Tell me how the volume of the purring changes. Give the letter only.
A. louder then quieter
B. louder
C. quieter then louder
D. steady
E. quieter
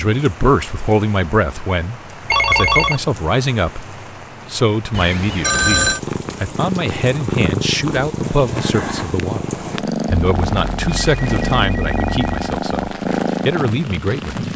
D.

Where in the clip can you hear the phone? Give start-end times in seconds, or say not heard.
2.3-3.0, 4.9-6.0, 10.2-12.6.